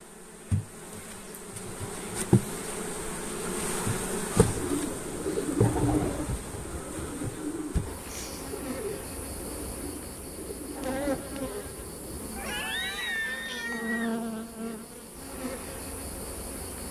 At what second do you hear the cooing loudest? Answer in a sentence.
The volume of the cooing peaks at 6 seconds.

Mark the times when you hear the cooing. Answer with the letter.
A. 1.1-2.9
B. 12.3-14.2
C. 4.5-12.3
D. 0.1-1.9
C.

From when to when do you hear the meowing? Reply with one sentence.
You can hear the meowing from 12.3 to 14.2 s.